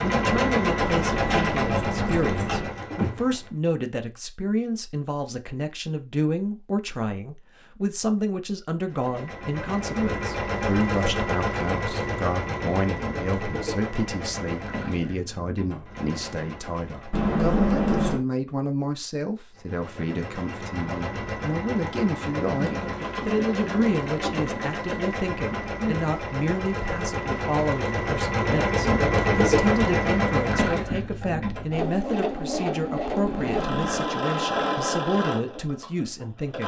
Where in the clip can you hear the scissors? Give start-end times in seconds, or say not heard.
0.8-2.7, 17.1-18.2, 33.2-34.0.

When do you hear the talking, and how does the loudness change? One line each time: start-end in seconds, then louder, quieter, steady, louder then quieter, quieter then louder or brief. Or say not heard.
0.1-36.6 steady.